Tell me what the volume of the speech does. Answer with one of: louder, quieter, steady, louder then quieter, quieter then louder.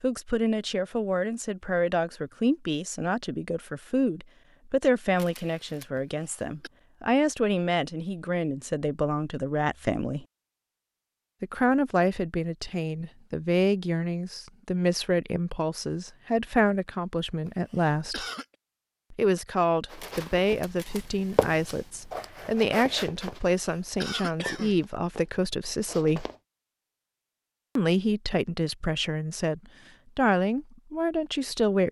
steady.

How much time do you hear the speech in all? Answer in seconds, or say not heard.
28 s.